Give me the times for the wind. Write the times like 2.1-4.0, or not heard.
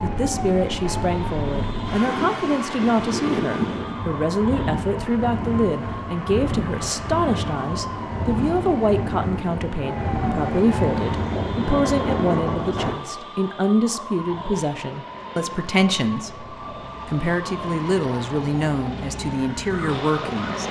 0.0-12.9.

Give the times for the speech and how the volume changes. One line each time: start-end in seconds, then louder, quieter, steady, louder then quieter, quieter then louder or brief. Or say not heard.
0.0-20.6 steady.